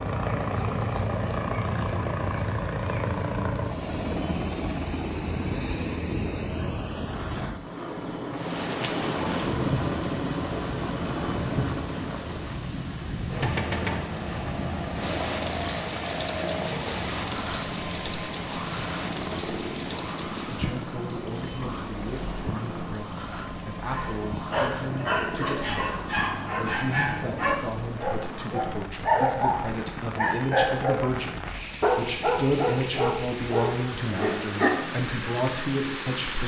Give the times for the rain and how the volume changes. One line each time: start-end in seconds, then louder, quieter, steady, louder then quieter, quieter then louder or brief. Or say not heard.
8.3-36.4 quieter then louder.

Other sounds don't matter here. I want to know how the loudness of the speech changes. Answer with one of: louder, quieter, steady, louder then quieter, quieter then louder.
louder.